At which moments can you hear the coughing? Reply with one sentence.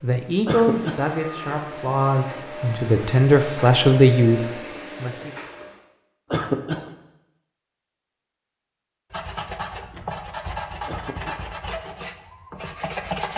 The coughing can be heard from 0.5 to 1.1 s, from 6.3 to 6.9 s and from 10.8 to 11.4 s.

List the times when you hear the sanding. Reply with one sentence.
The sanding can be heard from 9.1 to 13.3 s.